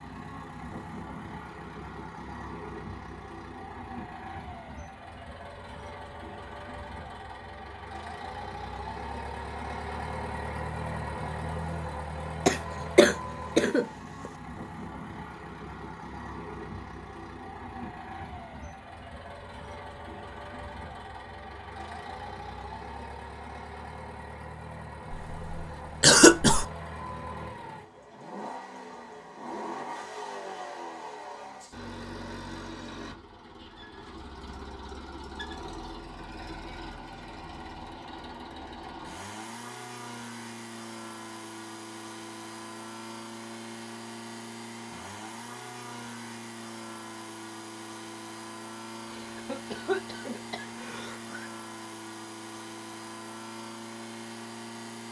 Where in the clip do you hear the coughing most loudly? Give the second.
26 s.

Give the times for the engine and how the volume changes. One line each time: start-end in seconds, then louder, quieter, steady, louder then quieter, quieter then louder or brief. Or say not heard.
0.0-55.0 steady.